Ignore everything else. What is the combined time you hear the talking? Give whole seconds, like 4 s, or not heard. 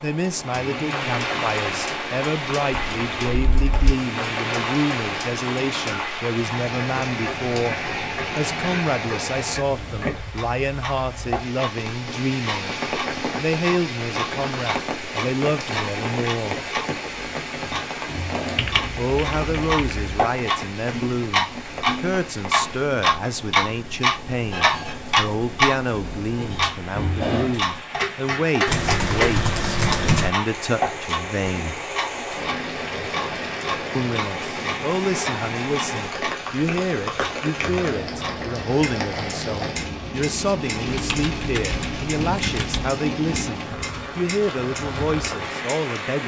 42 s.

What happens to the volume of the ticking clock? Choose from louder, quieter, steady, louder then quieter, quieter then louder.
louder then quieter.